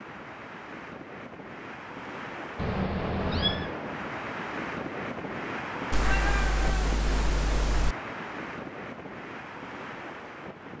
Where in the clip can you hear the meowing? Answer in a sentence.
You can hear the meowing from 2.5 to 3.8 s and from 5.9 to 8.0 s.